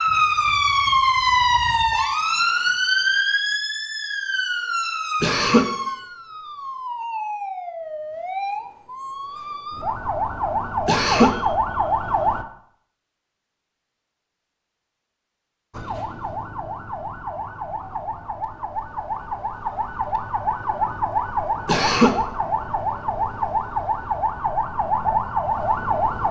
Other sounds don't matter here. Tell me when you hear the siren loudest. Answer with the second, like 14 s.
1 s.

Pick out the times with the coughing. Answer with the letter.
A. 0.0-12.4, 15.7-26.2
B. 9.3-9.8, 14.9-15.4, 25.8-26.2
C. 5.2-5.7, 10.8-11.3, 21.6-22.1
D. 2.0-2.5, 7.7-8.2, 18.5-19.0
C.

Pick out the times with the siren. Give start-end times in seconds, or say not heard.
0.0-12.4, 15.7-26.2.